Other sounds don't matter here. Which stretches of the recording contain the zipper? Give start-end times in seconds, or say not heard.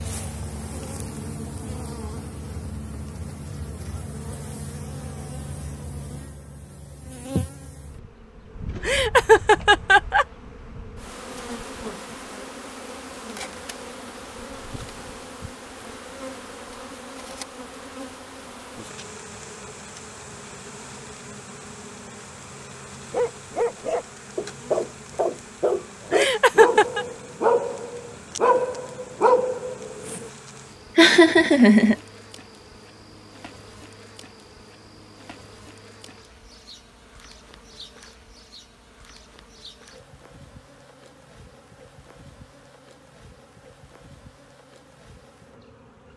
not heard.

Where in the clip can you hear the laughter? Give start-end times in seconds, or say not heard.
8.8-10.2, 26.1-27.1, 30.9-31.9.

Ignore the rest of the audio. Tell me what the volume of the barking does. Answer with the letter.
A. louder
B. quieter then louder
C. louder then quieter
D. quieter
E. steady
E.